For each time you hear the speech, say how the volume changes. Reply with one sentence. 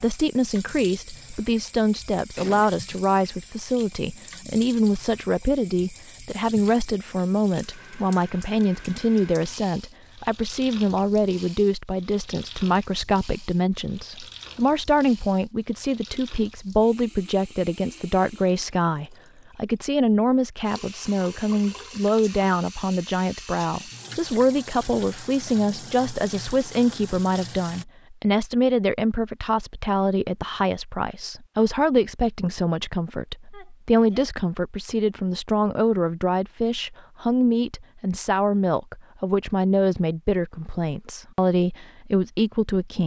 The speech can be heard from 0.0 to 43.0 s, at a steady volume.